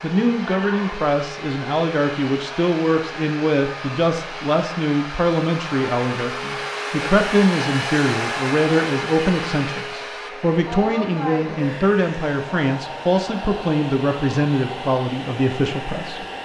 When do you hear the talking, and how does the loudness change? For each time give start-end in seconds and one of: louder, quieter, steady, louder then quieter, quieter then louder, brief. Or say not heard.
0.0-16.2 steady.